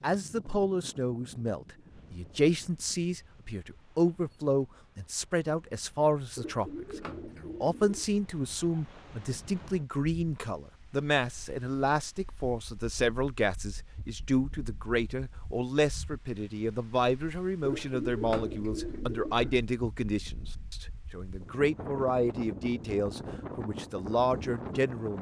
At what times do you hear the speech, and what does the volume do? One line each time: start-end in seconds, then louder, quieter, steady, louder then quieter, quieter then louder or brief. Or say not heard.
0.0-25.1 steady.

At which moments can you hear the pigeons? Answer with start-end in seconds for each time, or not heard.
6.3-8.1, 17.6-19.6.